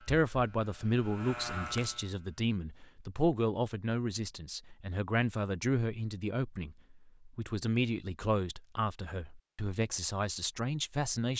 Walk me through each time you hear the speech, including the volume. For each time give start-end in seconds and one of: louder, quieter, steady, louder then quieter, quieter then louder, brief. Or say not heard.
0.1-11.3 steady.